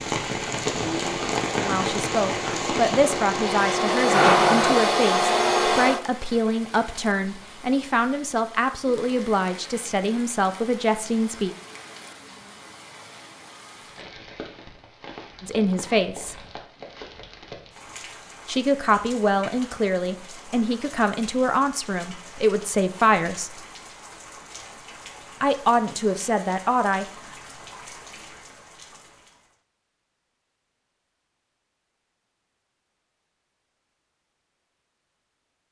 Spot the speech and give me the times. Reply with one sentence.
The speech can be heard from 1.6 to 11.6 s, from 15.4 to 16.4 s, from 18.4 to 23.6 s and from 25.4 to 27.1 s.